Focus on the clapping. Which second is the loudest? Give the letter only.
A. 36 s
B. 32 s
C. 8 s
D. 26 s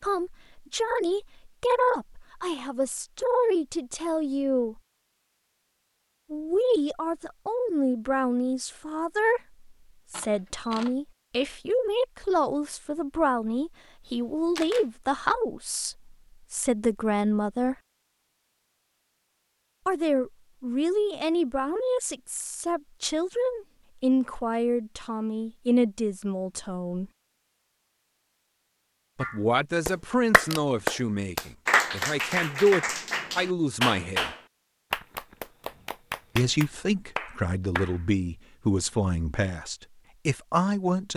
B.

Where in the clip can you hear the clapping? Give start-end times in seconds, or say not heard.
29.2-38.0.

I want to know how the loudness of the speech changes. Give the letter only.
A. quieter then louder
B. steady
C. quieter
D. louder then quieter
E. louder
B.